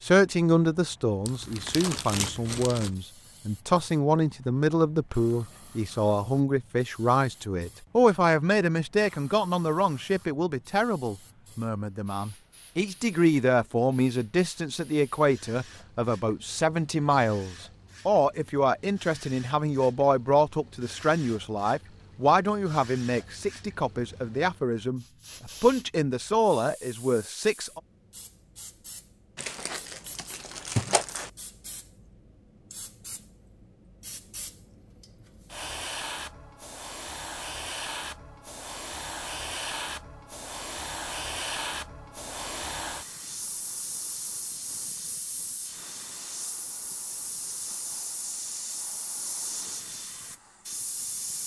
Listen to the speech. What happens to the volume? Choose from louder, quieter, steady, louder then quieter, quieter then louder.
steady.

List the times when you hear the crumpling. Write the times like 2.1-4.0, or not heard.
1.2-2.9, 29.4-31.3.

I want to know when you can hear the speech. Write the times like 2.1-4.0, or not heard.
0.0-27.8.